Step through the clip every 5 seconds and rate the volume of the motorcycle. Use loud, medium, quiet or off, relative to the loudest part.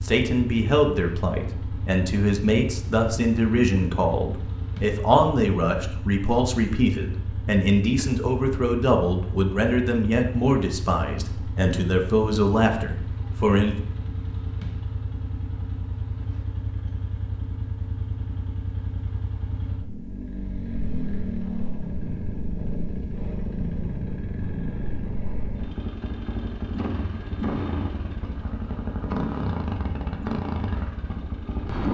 medium, medium, medium, medium, loud, loud, loud.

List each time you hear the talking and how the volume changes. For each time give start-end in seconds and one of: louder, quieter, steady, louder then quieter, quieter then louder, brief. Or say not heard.
0.0-13.8 steady.